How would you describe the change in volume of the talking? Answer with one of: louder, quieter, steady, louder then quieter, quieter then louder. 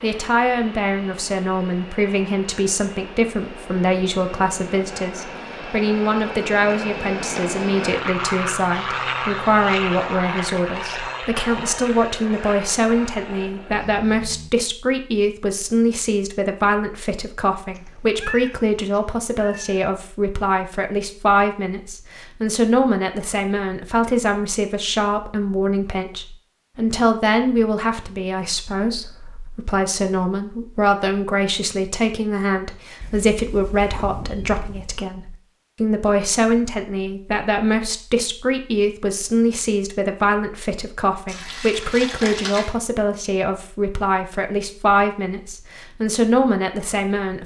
steady.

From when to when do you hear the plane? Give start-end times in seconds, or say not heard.
0.0-14.5.